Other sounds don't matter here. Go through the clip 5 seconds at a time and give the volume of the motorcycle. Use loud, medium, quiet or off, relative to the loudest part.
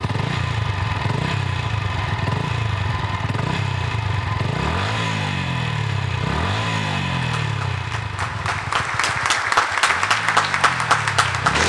loud, loud, medium.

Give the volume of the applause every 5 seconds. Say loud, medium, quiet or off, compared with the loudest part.
off, loud, loud.